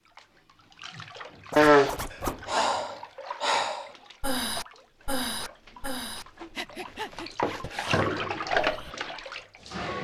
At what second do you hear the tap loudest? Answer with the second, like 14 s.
8 s.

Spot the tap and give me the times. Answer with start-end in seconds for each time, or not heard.
0.0-9.9.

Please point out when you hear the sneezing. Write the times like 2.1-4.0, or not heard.
1.6-2.6.